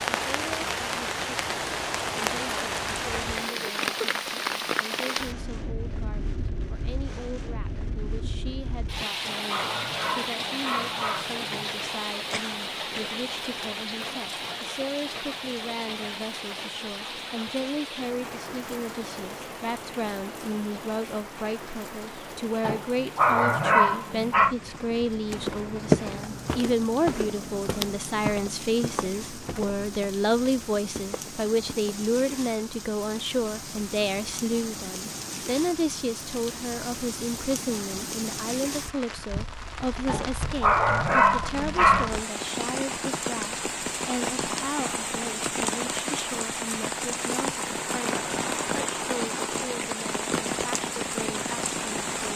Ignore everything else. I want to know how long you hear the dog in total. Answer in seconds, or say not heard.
7 s.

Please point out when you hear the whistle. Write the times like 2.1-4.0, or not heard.
not heard.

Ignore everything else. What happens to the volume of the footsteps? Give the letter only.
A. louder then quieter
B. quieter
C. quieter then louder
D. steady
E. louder
B.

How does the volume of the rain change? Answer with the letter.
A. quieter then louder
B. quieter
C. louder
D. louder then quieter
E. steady
A.